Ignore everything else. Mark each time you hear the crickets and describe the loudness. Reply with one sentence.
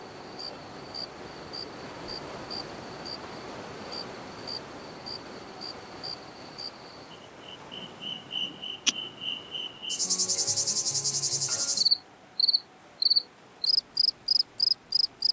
The crickets can be heard from 0.1 to 15.2 s, getting louder.